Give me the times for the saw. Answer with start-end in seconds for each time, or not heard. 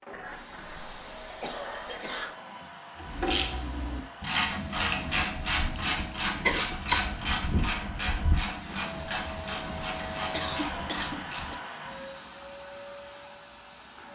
not heard.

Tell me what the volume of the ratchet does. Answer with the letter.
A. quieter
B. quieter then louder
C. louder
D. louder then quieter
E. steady
A.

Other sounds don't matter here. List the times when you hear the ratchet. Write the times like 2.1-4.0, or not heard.
3.0-11.6.